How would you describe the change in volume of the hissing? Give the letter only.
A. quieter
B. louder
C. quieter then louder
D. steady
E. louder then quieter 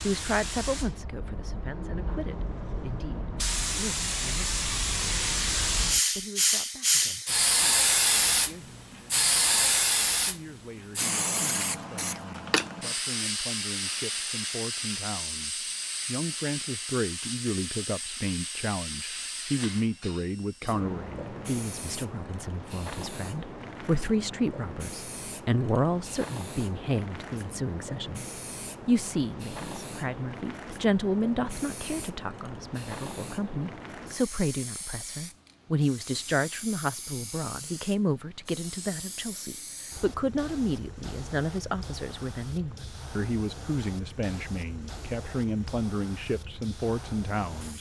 A.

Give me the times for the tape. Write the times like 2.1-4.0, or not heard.
not heard.